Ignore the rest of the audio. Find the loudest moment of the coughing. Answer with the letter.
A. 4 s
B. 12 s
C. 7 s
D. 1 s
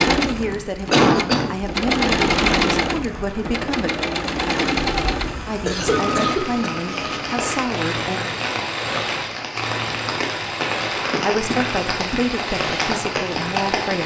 D.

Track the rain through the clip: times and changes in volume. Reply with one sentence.
You can hear the rain from 0.1 to 14.0 s, getting louder.